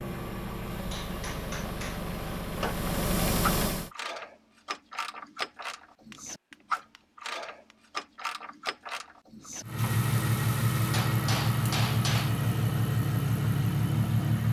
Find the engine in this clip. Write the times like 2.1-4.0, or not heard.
0.0-3.9, 9.6-14.4.